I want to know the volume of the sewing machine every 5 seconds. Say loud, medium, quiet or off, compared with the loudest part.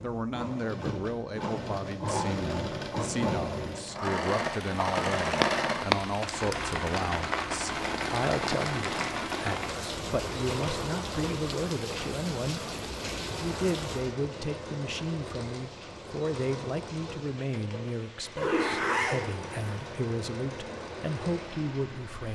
loud, loud, medium, medium, medium.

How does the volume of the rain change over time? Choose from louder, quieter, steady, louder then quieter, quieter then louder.
quieter.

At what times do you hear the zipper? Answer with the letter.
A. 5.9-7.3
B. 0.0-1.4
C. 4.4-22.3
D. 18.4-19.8
D.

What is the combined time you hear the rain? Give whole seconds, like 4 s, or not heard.
18 s.